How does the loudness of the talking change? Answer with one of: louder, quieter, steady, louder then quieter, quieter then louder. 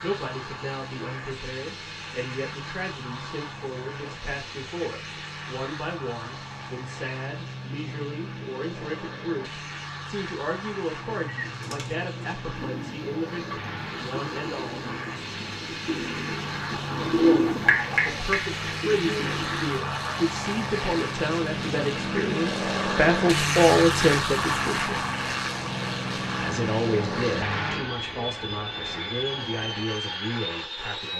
louder then quieter.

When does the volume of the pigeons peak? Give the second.
17 s.